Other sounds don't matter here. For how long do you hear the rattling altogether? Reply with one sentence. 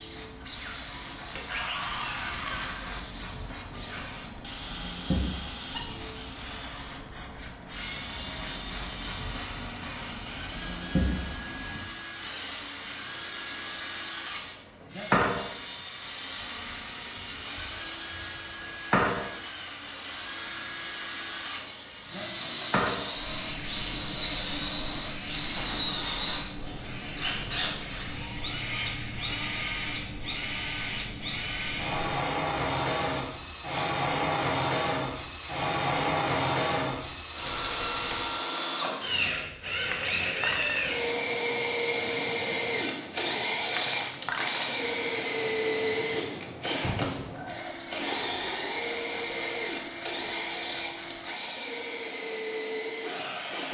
The rattling can be heard for 2 seconds in total.